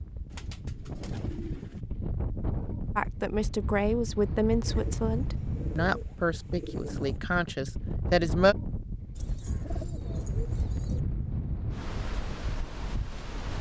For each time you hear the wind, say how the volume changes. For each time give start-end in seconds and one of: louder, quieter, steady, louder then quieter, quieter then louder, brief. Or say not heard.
0.0-13.5 steady.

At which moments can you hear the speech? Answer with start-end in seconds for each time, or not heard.
3.0-8.6.